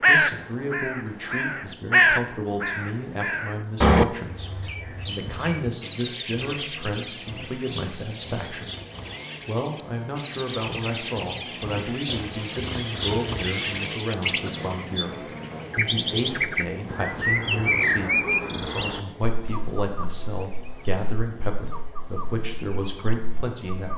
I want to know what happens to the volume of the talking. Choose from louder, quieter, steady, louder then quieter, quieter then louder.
steady.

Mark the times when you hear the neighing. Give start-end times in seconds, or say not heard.
not heard.